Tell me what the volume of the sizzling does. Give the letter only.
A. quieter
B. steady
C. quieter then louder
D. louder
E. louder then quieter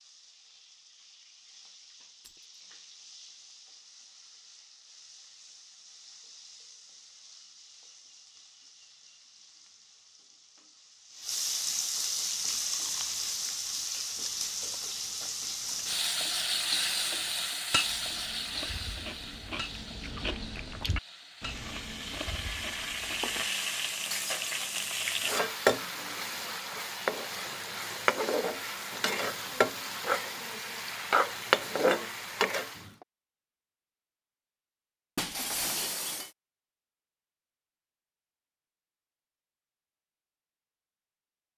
D.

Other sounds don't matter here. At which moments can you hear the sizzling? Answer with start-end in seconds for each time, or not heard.
0.0-33.0.